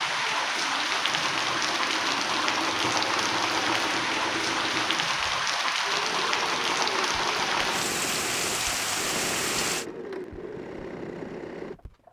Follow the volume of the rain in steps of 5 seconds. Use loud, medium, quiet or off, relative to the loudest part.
loud, loud, off.